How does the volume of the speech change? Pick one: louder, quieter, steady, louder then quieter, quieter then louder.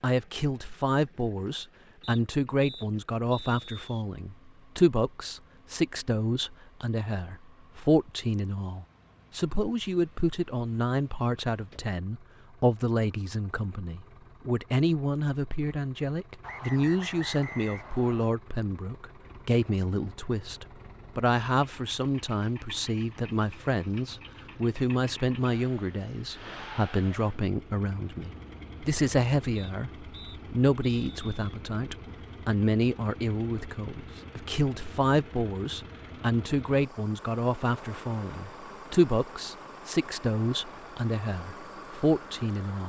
steady.